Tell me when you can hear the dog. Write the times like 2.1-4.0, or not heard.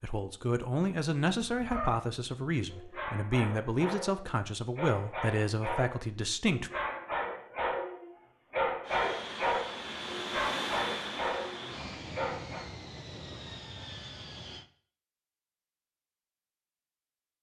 1.4-12.7.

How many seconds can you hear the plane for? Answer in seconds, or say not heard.
6 s.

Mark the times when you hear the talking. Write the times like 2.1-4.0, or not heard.
0.0-6.7.